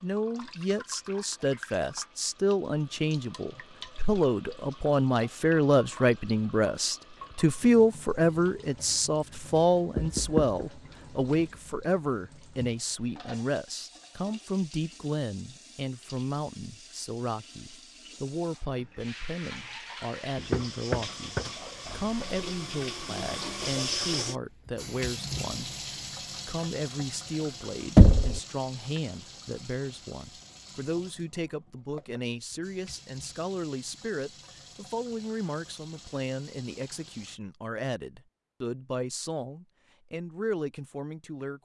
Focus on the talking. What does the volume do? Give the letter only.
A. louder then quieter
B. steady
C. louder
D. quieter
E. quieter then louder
D.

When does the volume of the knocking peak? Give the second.
28 s.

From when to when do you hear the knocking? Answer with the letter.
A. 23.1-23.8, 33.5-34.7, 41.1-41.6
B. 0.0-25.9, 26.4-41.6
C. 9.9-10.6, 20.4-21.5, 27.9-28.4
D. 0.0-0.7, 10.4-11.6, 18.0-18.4
C.